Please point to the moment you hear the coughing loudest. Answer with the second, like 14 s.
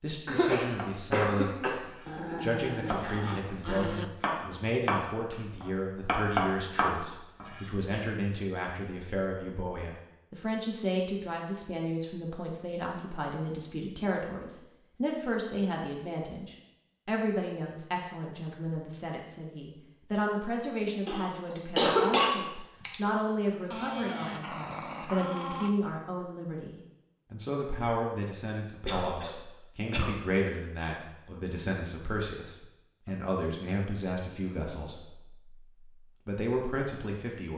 22 s.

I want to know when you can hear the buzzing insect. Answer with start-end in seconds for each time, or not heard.
not heard.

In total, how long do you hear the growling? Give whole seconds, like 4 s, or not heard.
4 s.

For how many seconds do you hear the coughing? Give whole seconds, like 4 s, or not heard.
5 s.